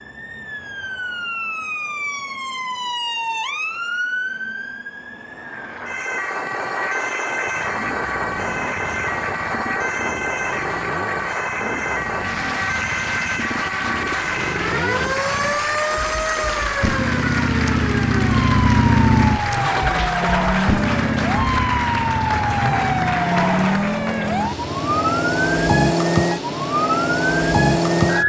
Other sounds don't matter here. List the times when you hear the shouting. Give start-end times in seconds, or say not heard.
not heard.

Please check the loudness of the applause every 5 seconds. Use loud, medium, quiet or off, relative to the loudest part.
off, loud, loud, loud, loud, off.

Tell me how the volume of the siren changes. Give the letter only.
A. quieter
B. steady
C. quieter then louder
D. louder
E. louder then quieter
D.